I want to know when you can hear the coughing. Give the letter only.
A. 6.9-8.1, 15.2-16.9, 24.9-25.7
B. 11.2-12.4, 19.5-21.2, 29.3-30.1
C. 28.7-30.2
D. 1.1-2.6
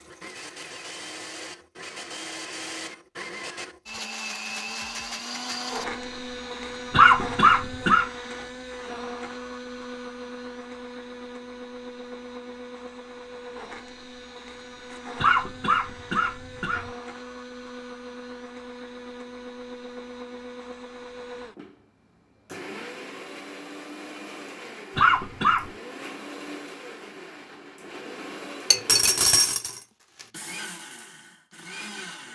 A.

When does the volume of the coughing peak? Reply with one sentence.
The volume of the coughing peaks at 7 seconds.